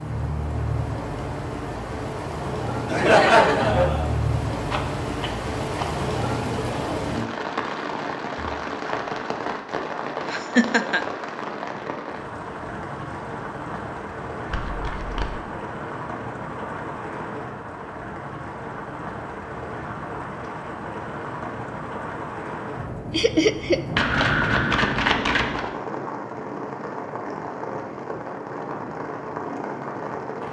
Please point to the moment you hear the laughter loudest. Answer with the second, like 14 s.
3 s.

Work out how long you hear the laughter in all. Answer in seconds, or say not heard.
3 s.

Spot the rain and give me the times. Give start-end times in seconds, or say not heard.
0.0-30.4.